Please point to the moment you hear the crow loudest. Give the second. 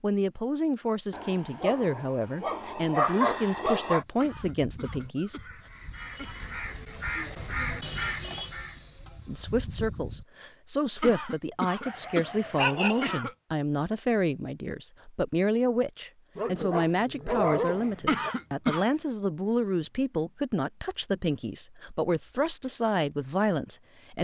8 s.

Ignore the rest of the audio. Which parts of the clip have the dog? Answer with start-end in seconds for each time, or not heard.
1.1-4.0, 11.8-13.2, 16.4-18.4.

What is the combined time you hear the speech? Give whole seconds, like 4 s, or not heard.
20 s.